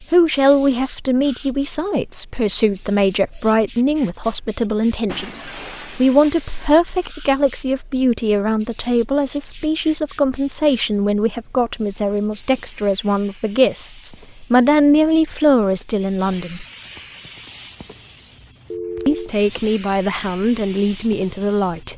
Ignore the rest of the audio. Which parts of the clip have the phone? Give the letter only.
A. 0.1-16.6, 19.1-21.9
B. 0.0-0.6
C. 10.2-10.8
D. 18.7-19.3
D.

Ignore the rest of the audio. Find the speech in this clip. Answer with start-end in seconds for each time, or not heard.
0.1-16.6, 19.1-21.9.